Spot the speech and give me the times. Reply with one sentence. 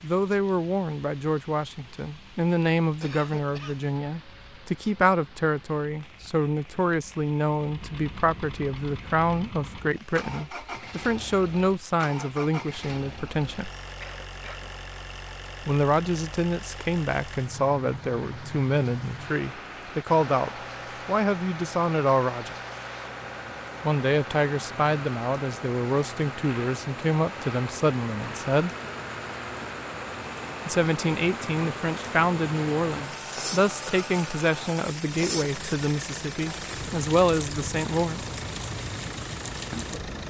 You can hear the speech from 0.0 to 13.7 s, from 15.7 to 22.6 s, from 23.8 to 28.7 s and from 30.6 to 38.2 s.